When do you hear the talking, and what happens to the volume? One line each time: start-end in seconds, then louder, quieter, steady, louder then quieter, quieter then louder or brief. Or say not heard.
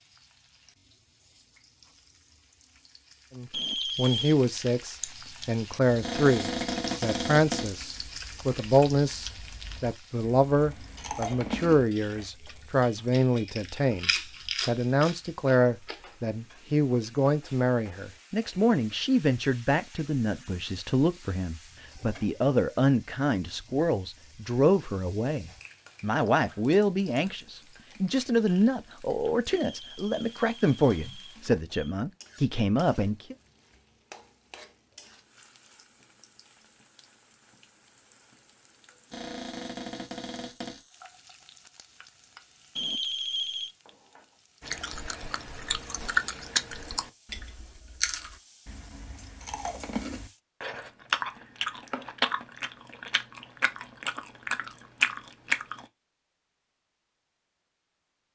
3.4-33.4 steady.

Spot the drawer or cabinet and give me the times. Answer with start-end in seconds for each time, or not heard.
6.0-7.8, 39.1-40.8.